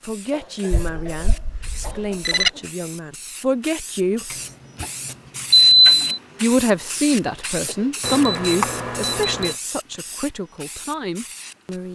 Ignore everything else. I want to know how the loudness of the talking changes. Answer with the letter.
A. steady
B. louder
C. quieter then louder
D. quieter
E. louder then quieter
E.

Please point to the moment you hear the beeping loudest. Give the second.
6 s.